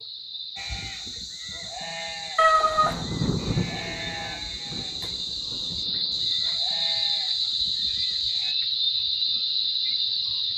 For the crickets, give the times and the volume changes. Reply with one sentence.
The crickets can be heard from 0.0 to 10.5 s, getting louder.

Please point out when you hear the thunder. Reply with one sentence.
The thunder can be heard from 2.8 to 6.3 s.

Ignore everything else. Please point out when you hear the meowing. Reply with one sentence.
The meowing can be heard from 2.4 to 3.0 s.